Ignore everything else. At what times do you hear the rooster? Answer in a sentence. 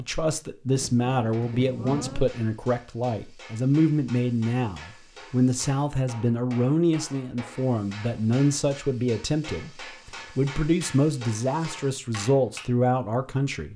You can't hear the rooster here.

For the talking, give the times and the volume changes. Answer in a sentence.
The talking can be heard from 0.0 to 13.7 s, at a steady volume.